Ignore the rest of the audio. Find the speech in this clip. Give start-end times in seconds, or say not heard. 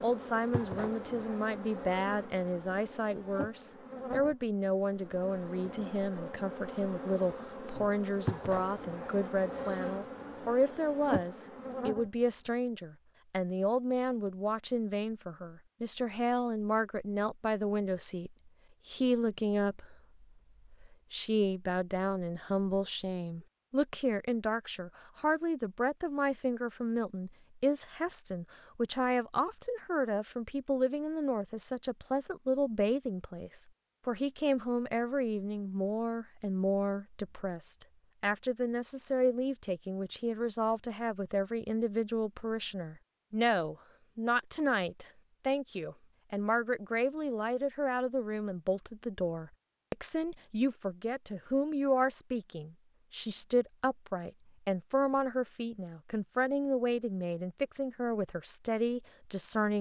0.0-59.7.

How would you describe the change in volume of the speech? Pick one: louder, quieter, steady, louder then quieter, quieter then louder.
steady.